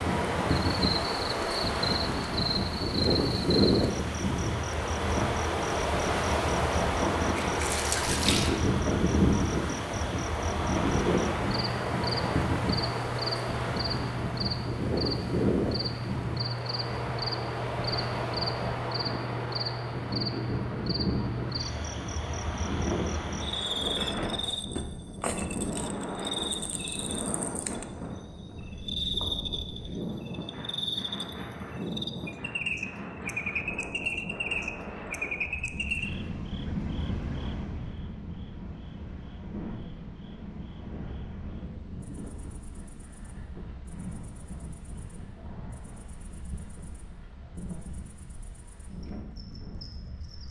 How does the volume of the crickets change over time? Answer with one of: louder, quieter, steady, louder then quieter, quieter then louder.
quieter.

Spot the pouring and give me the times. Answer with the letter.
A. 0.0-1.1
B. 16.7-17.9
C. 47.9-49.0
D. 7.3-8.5
D.